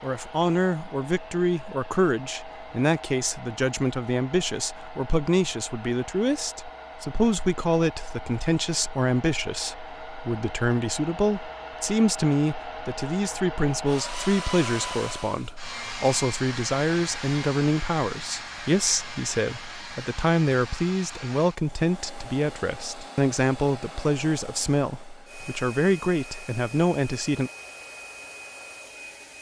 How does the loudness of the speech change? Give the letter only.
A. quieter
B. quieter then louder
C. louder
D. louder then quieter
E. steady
E.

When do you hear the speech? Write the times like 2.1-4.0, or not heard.
0.0-27.5.